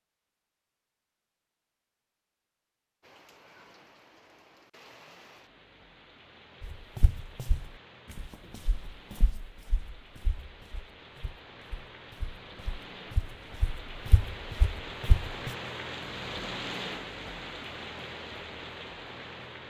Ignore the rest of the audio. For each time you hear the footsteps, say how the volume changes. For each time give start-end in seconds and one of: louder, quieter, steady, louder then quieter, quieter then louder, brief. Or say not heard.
6.6-15.5 quieter then louder.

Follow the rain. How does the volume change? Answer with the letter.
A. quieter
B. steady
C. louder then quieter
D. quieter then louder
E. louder
E.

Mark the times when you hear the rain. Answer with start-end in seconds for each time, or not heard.
3.0-19.6.